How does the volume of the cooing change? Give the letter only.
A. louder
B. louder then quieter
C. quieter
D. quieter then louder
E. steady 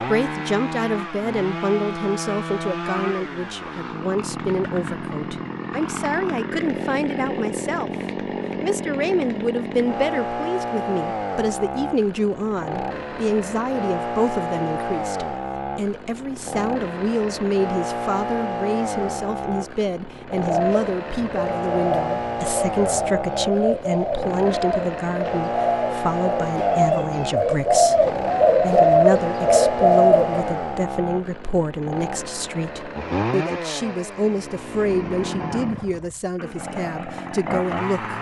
A.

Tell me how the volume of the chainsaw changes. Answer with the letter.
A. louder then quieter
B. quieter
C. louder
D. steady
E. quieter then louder
D.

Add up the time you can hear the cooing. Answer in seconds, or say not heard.
10 s.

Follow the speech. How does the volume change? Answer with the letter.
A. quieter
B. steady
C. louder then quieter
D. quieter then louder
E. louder
B.